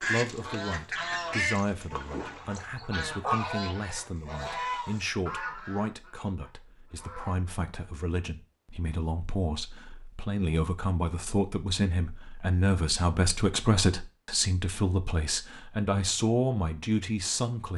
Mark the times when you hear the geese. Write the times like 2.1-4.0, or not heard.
0.0-7.3.